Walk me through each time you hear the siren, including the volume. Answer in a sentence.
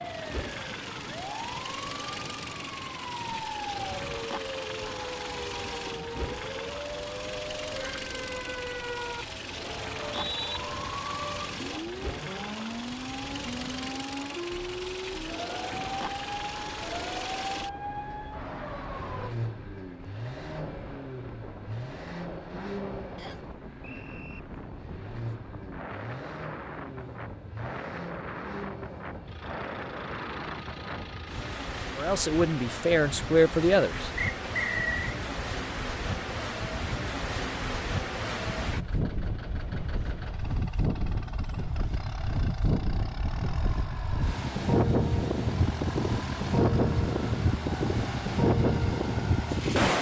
The siren can be heard from 0.0 to 19.4 s, at a steady volume.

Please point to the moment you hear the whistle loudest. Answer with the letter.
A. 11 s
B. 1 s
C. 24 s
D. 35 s
D.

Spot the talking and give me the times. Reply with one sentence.
The talking can be heard from 31.9 to 34.1 s.